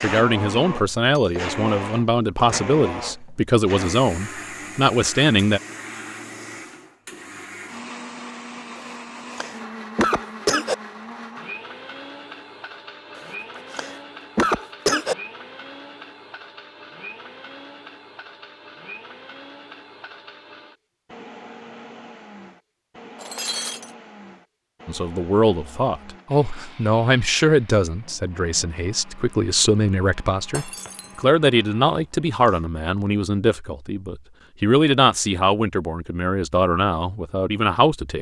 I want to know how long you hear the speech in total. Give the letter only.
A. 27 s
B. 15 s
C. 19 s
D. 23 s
C.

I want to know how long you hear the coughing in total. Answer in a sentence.
The coughing can be heard for 5 seconds in total.